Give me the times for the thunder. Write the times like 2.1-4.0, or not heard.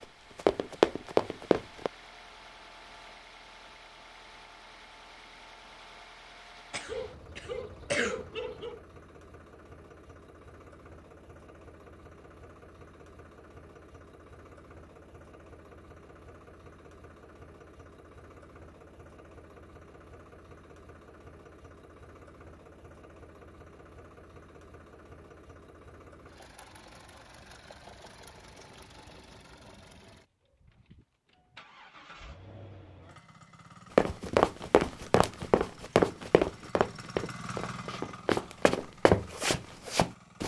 not heard.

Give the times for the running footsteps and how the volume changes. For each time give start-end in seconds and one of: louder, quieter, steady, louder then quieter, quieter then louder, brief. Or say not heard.
0.0-1.9 brief
34.0-40.4 quieter then louder.